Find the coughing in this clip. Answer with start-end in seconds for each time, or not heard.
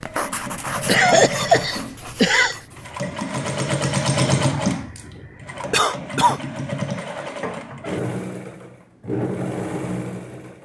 0.8-2.6, 5.7-6.4.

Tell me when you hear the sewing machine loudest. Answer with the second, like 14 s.
4 s.